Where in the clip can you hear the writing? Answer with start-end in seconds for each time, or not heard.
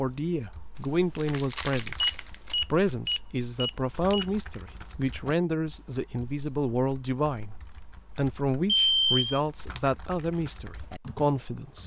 not heard.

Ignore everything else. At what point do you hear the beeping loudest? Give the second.
9 s.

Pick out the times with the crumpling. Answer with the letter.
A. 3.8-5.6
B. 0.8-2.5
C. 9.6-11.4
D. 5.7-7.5
B.